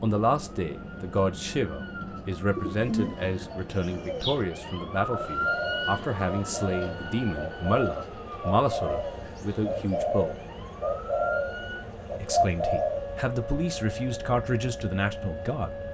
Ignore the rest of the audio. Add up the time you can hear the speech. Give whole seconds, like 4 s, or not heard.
14 s.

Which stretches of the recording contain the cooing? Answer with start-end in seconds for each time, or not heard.
2.5-13.1.